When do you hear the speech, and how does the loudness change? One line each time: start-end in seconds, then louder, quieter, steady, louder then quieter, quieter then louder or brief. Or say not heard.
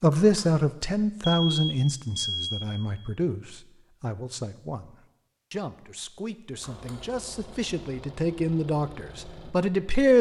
0.0-10.1 quieter then louder.